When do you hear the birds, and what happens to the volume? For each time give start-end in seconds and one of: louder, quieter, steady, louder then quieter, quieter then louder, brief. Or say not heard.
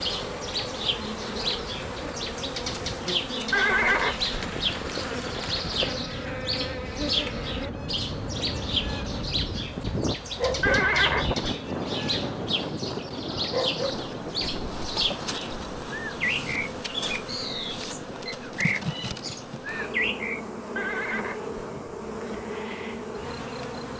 0.0-20.4 steady.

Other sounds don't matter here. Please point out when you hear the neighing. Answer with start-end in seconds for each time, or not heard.
3.5-6.0, 10.6-11.4, 20.8-21.6.